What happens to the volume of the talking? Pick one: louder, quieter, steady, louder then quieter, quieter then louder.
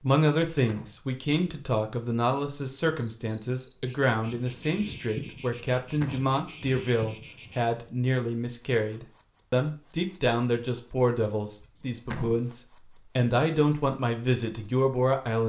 steady.